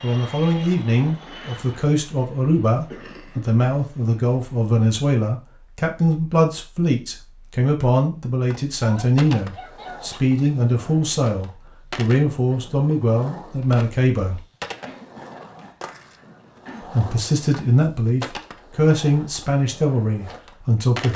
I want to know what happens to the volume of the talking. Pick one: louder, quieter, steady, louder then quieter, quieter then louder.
steady.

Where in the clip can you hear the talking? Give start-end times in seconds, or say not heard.
0.0-14.4, 16.9-21.1.